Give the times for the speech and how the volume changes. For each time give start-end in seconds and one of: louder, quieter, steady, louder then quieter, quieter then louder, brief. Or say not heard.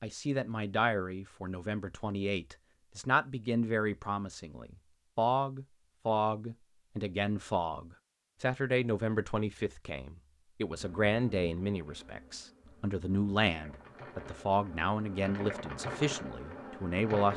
0.0-17.3 steady.